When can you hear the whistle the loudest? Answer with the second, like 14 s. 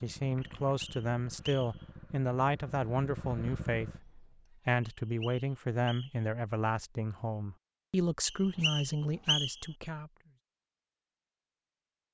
9 s.